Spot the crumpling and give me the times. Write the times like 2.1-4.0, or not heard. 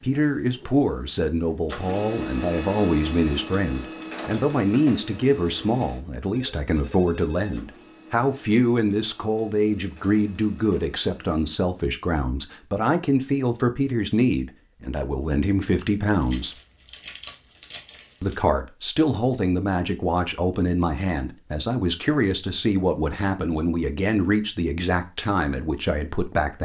16.2-18.4.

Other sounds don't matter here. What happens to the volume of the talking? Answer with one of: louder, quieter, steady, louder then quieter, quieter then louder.
steady.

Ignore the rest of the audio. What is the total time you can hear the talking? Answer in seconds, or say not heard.
25 s.